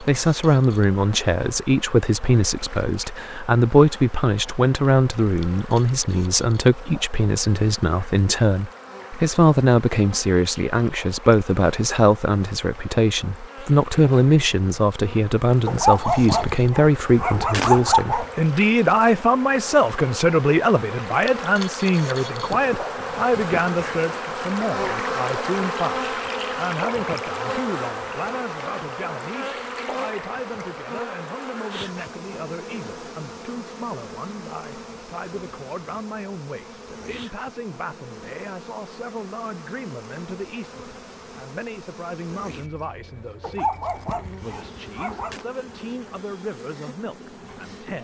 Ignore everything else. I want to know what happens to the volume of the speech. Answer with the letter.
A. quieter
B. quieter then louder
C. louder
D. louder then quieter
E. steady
A.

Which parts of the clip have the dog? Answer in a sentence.
You can hear the dog from 15.7 to 18.3 s and from 43.4 to 45.5 s.